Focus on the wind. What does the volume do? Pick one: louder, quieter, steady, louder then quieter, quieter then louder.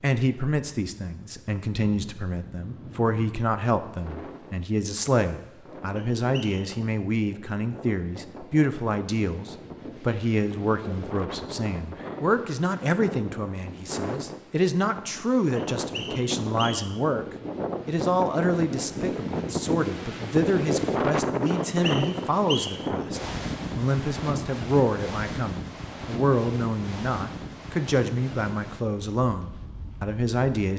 louder then quieter.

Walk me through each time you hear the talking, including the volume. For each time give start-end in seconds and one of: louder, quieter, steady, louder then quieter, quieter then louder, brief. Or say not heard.
0.0-30.7 steady.